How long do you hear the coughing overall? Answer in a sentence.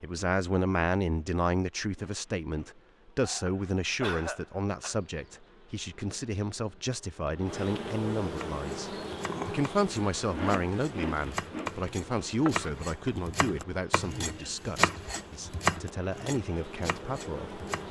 You can hear the coughing for 2 seconds altogether.